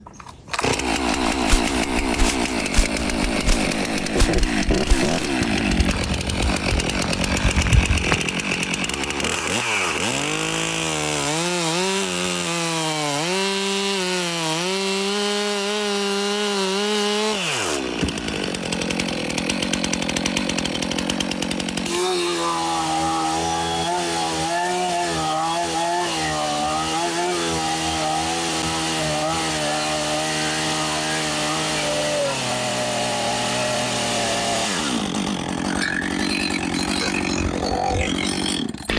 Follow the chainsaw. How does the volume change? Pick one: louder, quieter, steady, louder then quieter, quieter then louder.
steady.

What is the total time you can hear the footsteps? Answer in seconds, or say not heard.
7 s.